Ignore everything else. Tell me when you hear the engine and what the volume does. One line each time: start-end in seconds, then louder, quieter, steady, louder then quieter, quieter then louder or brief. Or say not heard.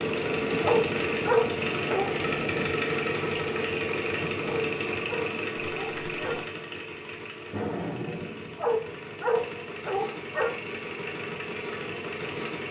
0.0-12.6 quieter.